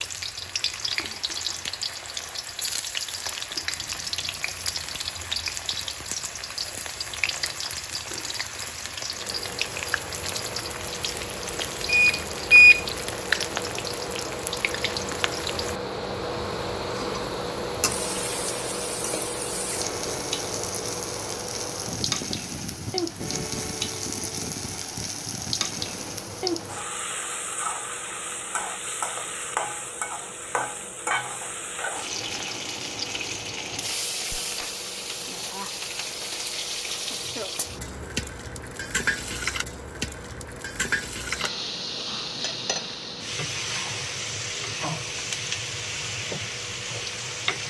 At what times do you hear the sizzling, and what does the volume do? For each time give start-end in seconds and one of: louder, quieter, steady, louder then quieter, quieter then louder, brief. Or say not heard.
0.0-47.6 steady.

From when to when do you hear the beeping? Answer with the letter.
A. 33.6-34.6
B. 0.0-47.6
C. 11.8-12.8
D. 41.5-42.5
C.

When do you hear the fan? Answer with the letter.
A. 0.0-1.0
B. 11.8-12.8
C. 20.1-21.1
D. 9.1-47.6
D.